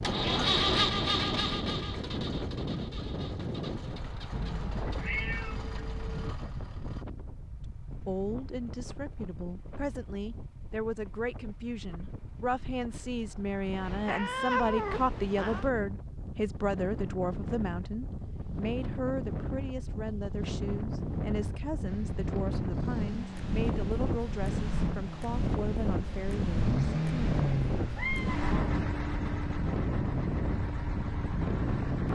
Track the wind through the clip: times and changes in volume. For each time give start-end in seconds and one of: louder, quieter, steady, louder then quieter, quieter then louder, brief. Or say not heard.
0.0-32.1 quieter then louder.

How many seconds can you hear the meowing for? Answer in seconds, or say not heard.
4 s.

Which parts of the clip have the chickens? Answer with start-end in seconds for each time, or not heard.
not heard.